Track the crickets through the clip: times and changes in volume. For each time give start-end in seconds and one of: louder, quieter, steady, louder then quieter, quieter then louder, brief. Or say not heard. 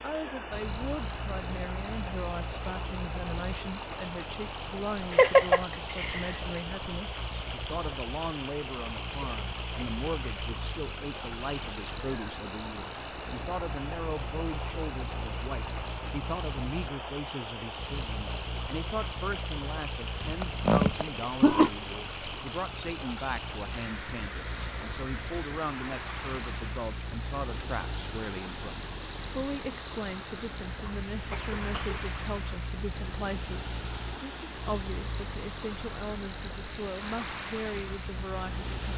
0.0-38.9 steady.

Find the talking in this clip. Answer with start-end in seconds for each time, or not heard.
0.0-38.9.